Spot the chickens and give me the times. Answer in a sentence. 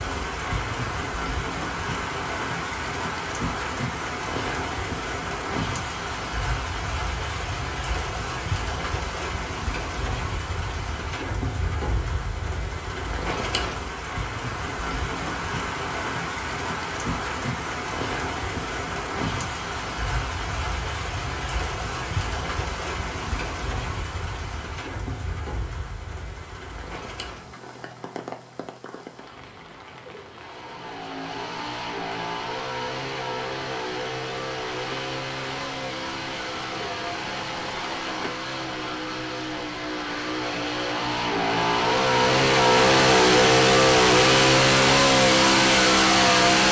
The chickens can't be heard in this clip.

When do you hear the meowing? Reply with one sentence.
The meowing can't be heard in this clip.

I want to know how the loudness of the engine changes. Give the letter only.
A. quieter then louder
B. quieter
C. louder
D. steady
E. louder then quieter
C.